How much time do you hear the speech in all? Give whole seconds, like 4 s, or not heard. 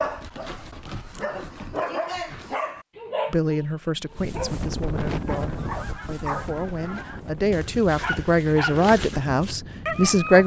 7 s.